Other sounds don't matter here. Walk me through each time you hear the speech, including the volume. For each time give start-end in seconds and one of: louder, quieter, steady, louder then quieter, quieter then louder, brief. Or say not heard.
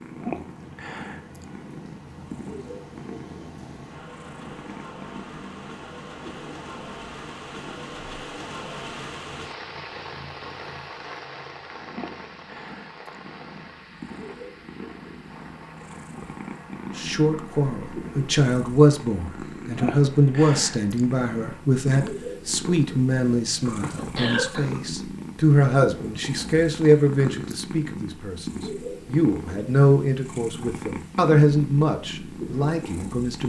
16.9-33.4 steady.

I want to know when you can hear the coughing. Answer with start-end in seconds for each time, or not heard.
23.6-24.8.